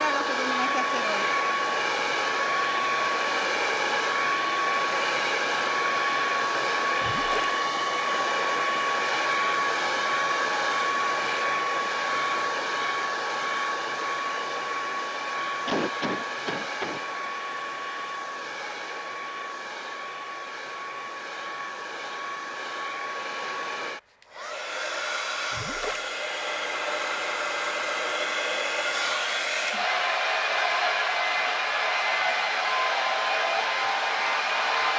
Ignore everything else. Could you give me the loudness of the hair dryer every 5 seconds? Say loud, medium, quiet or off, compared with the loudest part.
loud, loud, loud, medium, medium, loud, loud.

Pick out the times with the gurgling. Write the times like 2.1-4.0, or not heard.
7.0-7.5, 25.5-26.1.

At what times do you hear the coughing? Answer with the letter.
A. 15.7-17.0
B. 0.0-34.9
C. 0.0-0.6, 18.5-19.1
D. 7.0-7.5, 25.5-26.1
A.